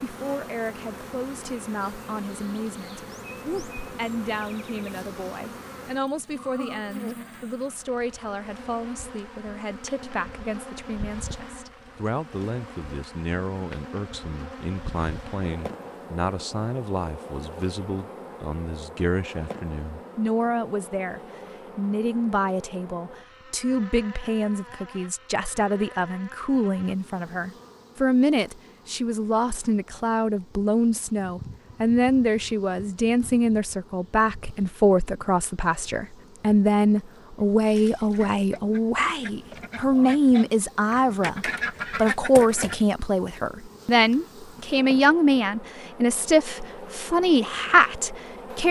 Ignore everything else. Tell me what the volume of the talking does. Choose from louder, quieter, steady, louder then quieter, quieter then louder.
louder.